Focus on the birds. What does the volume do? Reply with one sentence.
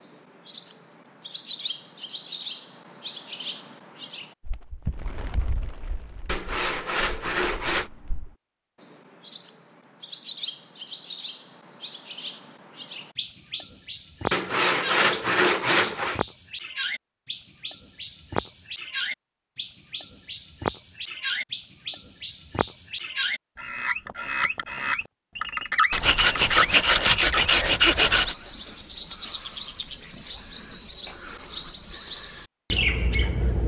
The loudness of the birds goes up.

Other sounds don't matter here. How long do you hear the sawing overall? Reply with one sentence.
The sawing can be heard for 6 seconds in total.